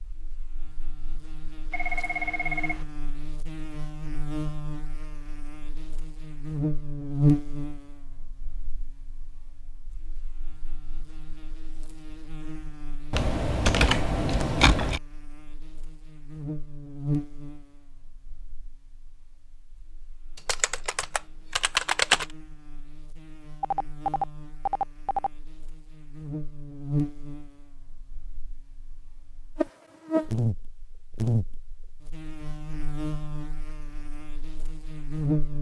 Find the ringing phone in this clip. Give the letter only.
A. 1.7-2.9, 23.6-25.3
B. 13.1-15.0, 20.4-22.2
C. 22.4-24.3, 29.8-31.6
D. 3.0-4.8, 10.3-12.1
A.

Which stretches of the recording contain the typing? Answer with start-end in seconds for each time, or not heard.
13.1-15.0, 20.4-22.2.